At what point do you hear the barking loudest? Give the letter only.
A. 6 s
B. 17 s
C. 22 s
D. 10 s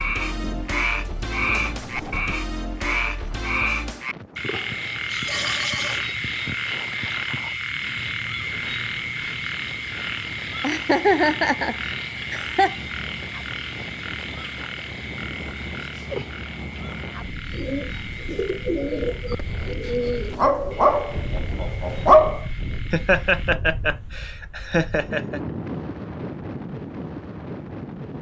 C.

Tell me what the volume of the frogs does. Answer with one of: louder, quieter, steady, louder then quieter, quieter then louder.
quieter.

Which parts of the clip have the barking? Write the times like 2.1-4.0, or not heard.
20.4-22.4.